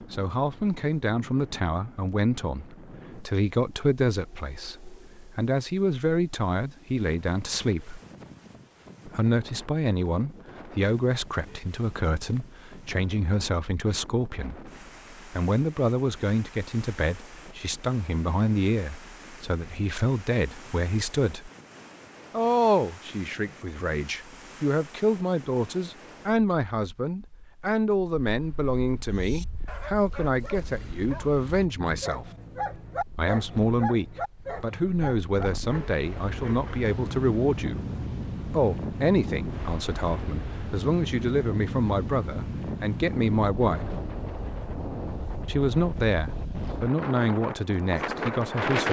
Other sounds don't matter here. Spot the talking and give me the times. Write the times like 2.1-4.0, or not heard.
0.0-8.0, 9.1-21.5, 22.3-32.2, 33.1-37.8, 38.5-44.0, 45.5-48.8.